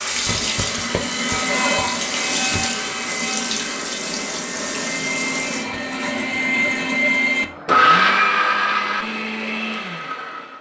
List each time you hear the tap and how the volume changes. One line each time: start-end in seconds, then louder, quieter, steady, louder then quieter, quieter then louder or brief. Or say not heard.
0.0-5.7 steady.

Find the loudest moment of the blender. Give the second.
8 s.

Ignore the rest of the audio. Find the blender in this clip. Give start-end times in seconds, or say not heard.
0.2-10.5.